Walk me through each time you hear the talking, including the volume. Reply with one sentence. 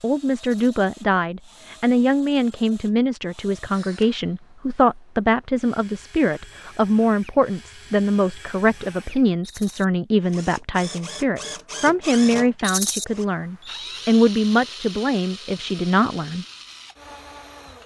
The talking can be heard from 0.0 to 16.4 s, at a steady volume.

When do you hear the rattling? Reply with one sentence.
The rattling can be heard from 0.4 to 0.8 s, from 9.4 to 9.8 s and from 12.6 to 13.1 s.